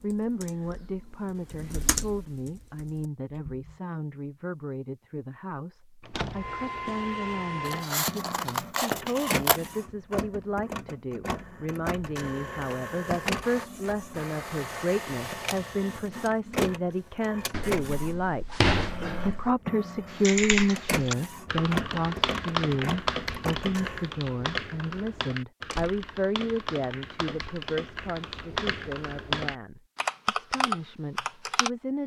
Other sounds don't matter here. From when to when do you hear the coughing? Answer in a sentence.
The coughing can't be heard in this clip.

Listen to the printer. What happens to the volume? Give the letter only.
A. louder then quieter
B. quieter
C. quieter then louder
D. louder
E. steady
E.